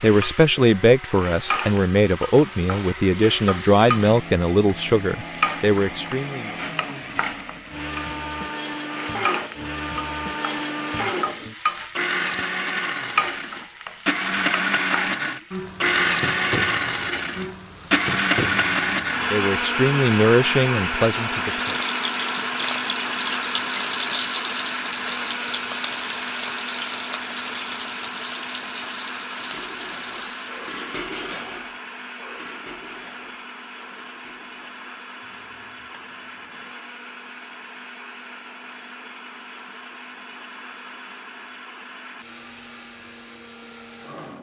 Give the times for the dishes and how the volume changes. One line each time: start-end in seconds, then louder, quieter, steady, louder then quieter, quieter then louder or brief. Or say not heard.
29.4-36.8 quieter.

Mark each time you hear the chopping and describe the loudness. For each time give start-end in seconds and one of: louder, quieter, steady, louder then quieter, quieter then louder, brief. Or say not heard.
not heard.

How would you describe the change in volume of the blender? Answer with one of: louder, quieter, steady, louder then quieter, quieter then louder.
louder then quieter.